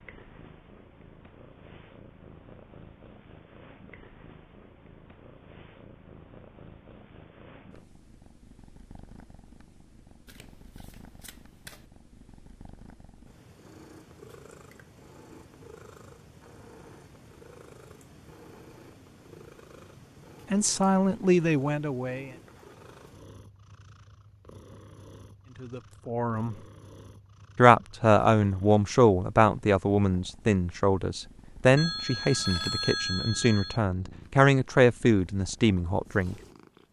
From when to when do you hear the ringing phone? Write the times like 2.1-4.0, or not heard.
31.8-33.8.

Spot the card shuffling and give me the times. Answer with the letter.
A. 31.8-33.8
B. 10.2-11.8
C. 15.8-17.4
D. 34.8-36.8
B.